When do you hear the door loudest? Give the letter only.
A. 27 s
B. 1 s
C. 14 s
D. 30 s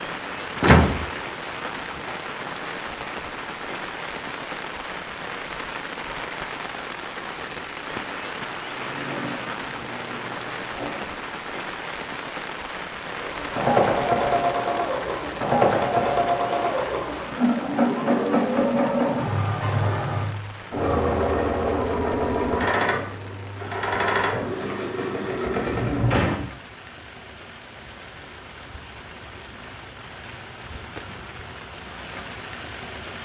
B.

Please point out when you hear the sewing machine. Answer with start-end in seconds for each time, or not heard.
8.7-11.2, 13.1-26.2.